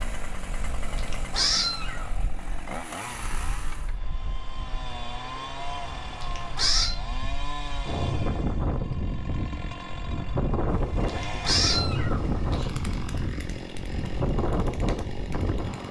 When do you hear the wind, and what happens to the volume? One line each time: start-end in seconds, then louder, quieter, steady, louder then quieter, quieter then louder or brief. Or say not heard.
0.0-15.8 louder.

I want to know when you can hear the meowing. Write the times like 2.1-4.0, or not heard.
0.8-2.0, 5.8-7.0, 10.7-12.7.